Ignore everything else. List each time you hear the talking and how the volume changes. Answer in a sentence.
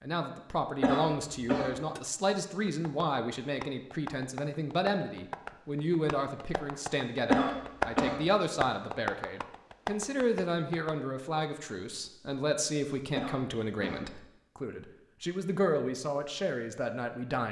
The talking can be heard from 0.0 to 17.4 s, at a steady volume.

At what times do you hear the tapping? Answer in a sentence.
You can hear the tapping from 1.9 to 10.9 s.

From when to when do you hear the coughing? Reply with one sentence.
You can hear the coughing from 0.8 to 1.8 s, from 7.2 to 8.2 s and from 13.2 to 14.1 s.